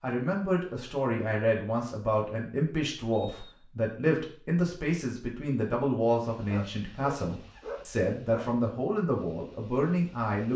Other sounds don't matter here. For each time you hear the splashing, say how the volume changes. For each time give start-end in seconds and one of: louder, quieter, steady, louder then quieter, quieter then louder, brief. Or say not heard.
not heard.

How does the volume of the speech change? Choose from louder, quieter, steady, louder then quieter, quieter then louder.
steady.